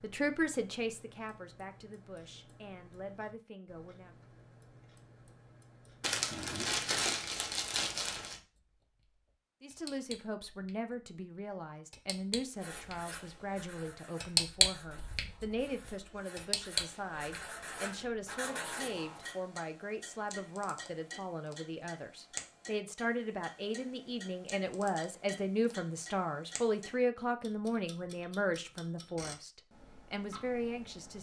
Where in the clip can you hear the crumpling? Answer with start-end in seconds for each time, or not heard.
6.0-8.4.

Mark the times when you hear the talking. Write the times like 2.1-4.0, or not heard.
0.0-4.2, 9.6-31.1.